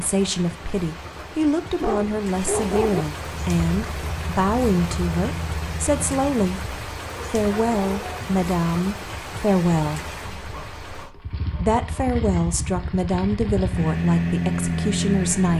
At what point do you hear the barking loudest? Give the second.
3 s.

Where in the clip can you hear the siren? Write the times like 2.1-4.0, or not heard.
not heard.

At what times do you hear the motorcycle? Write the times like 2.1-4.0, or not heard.
3.3-6.5, 11.0-15.5.